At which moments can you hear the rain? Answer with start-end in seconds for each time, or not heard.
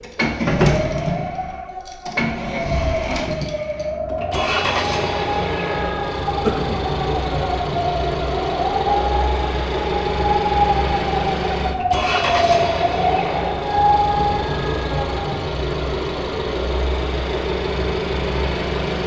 not heard.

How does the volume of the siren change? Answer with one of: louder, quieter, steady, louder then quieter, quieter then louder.
louder.